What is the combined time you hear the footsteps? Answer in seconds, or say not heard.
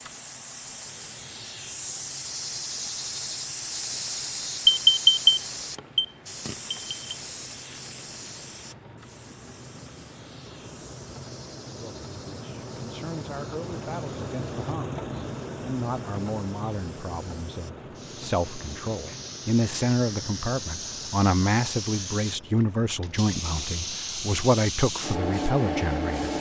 not heard.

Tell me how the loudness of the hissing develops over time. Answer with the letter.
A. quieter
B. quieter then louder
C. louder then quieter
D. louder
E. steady
B.